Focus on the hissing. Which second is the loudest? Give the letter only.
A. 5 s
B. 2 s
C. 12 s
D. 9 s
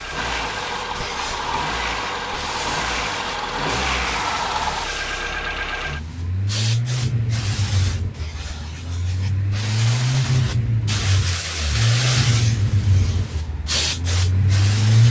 C.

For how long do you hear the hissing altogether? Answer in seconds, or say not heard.
15 s.